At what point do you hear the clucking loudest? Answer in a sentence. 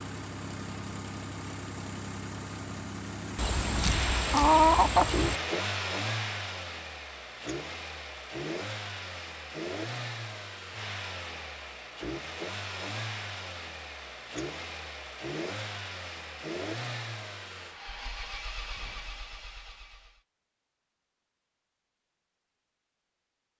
The loudest moment of the clucking is at 5 seconds.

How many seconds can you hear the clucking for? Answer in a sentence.
You can hear the clucking for 2 seconds altogether.